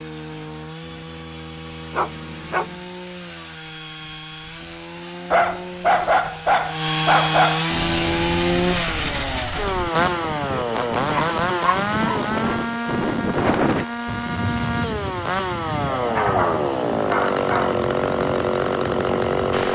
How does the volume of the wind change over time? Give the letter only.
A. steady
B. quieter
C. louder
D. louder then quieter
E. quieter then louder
D.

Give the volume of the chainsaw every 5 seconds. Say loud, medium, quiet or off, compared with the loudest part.
quiet, loud, loud, loud.